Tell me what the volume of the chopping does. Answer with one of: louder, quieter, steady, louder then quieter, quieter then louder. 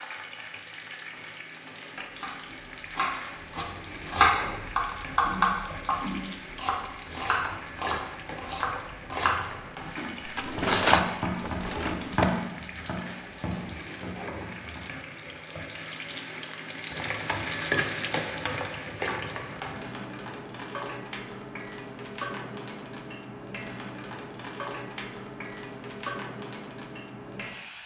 quieter.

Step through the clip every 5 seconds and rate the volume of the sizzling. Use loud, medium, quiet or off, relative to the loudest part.
medium, medium, medium, loud, medium, medium.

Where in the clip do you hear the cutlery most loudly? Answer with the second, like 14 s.
11 s.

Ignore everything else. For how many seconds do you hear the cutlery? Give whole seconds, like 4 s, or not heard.
2 s.